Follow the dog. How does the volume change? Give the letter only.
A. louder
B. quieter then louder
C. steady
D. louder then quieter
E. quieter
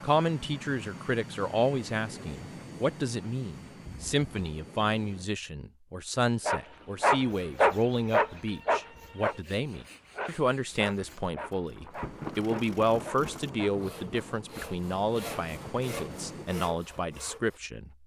E.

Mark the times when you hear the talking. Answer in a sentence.
You can hear the talking from 0.0 to 17.9 s.